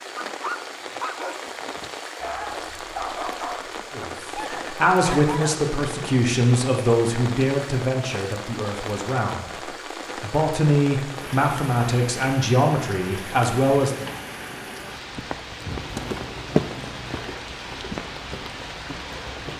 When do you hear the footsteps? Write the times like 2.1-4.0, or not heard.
15.7-19.5.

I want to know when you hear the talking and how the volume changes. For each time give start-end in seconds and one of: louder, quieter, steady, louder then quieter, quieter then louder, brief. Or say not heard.
3.9-14.1 quieter then louder.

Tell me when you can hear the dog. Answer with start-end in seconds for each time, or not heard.
0.3-5.7.